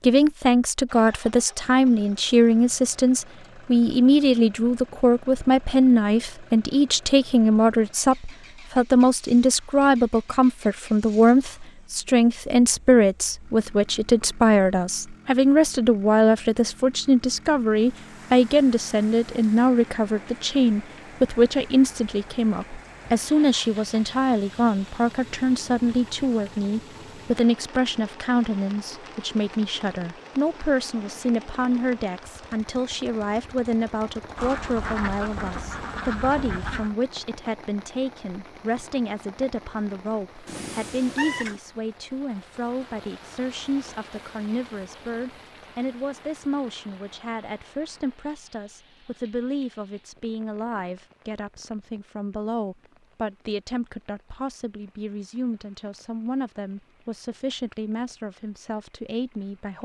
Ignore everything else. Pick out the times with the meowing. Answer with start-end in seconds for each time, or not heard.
40.5-41.6.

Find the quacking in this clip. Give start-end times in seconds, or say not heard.
34.4-37.0.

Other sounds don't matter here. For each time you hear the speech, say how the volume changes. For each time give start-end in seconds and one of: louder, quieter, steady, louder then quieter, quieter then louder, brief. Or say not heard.
0.0-59.8 quieter.